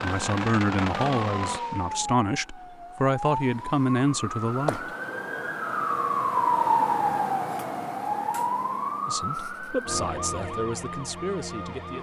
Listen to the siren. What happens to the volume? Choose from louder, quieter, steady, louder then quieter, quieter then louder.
louder then quieter.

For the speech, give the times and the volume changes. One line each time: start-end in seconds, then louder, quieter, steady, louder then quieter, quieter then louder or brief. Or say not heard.
0.0-4.9 quieter then louder
9.1-11.9 brief.